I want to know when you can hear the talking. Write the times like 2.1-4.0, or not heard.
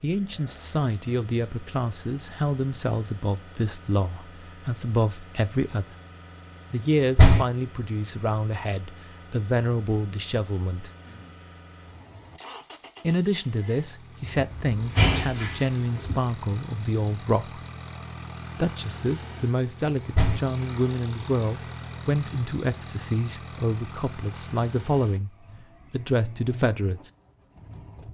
0.0-6.0, 6.7-10.9, 13.0-17.6, 18.6-25.3, 25.9-27.1.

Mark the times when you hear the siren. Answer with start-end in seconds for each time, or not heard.
not heard.